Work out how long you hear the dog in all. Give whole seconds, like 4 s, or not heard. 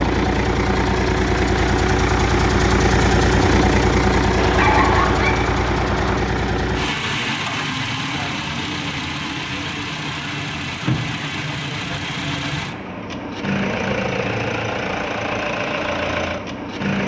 2 s.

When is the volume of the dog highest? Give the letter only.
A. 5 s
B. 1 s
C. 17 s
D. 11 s
A.